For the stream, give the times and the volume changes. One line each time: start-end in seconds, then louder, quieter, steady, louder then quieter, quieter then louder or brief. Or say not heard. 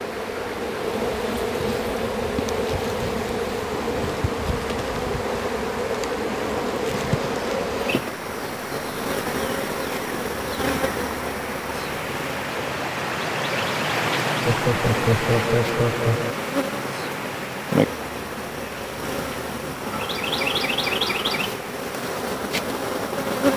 0.0-23.3 louder then quieter.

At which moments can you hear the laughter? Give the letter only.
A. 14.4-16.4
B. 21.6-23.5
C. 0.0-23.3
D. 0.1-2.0
A.